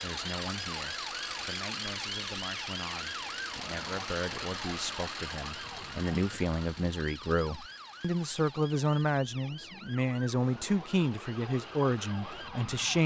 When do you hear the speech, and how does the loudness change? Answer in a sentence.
The speech can be heard from 0.0 to 13.0 s, getting louder.